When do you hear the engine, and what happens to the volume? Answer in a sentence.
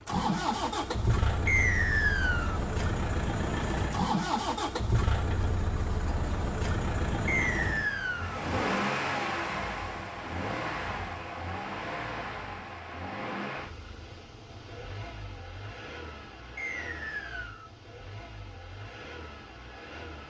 You can hear the engine from 0.0 to 20.2 s, getting quieter.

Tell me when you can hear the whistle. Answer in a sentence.
You can hear the whistle from 1.4 to 2.6 s, from 7.2 to 8.4 s and from 16.6 to 17.7 s.